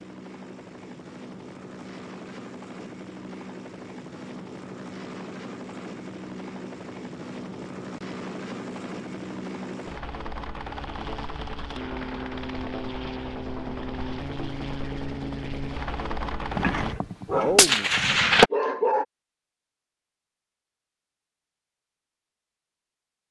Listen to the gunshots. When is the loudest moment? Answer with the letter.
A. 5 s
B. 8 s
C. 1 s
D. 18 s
D.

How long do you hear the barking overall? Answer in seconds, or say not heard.
2 s.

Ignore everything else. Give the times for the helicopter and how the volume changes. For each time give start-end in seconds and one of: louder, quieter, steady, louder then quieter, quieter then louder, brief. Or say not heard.
0.0-16.9 louder.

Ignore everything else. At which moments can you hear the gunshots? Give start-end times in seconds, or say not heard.
16.6-18.5.